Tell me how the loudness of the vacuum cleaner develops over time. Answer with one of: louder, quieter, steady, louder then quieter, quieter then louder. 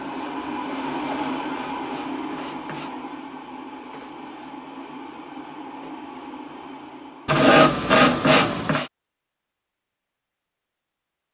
quieter.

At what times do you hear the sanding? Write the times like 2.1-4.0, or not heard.
1.0-2.9, 7.2-8.9.